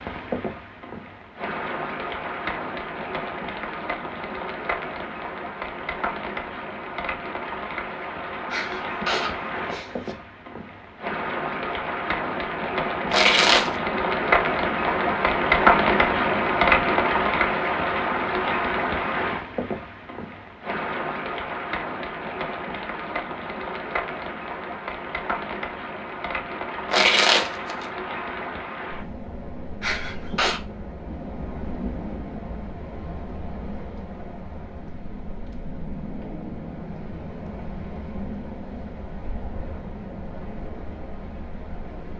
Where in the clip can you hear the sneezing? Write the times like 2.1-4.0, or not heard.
8.5-10.2, 29.8-30.6.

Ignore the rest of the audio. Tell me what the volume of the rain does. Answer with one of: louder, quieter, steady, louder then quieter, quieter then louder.
louder then quieter.